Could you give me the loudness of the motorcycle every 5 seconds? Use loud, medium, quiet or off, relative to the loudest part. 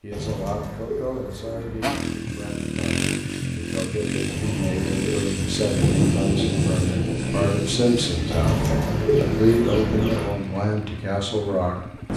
loud, loud, medium.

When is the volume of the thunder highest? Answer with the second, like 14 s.
6 s.